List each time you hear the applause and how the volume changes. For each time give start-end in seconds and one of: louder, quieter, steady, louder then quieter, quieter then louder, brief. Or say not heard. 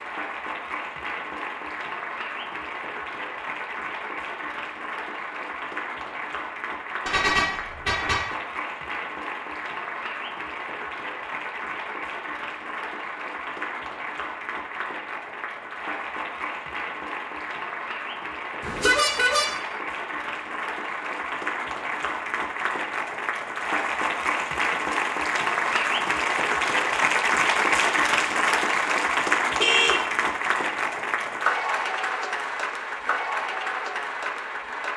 0.0-34.9 louder.